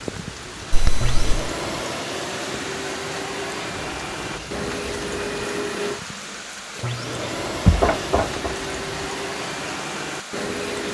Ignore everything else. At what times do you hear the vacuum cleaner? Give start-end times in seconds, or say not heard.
0.0-10.9.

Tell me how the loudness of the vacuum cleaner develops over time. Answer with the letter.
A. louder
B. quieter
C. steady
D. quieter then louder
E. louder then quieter
C.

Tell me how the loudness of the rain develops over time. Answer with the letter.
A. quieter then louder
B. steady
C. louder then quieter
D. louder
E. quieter
B.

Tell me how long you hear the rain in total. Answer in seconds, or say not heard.
11 s.